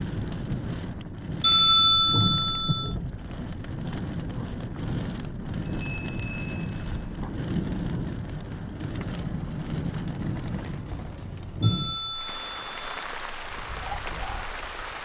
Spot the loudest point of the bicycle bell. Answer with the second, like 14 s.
2 s.